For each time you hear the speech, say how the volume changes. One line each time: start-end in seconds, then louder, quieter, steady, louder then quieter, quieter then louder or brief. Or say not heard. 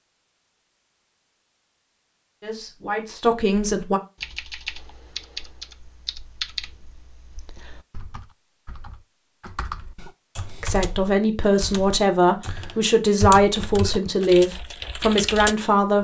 2.4-4.0 brief
10.6-15.9 steady.